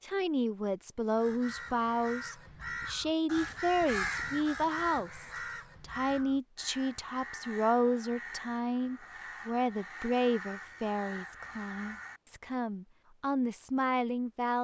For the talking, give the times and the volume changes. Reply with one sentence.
You can hear the talking from 0.0 to 14.5 s, at a steady volume.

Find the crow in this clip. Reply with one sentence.
You can hear the crow from 1.1 to 12.2 s.